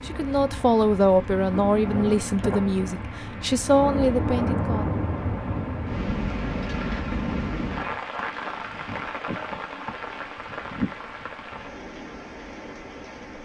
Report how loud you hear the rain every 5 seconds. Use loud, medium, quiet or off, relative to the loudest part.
loud, loud, medium.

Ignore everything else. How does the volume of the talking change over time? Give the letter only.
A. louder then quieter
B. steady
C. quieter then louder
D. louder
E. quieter
C.